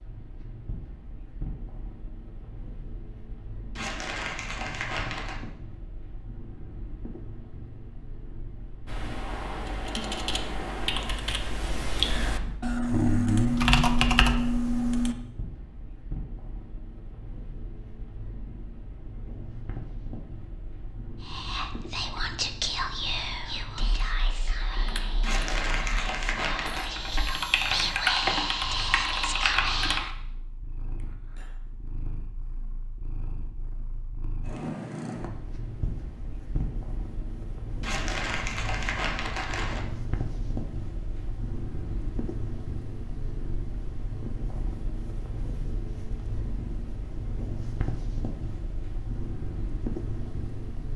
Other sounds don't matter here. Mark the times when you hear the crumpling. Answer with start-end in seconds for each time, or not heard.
3.8-5.4, 25.2-26.9, 37.8-39.9.